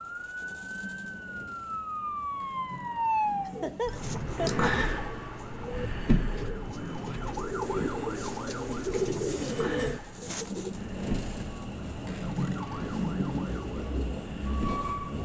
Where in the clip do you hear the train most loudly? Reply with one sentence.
The loudest moment of the train is at 13 seconds.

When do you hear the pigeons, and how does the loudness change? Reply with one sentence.
The pigeons can be heard from 3.5 to 10.8 s, getting louder.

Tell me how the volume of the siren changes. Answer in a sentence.
The loudness of the siren goes down.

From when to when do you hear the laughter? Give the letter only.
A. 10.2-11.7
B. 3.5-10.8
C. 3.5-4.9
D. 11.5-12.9
C.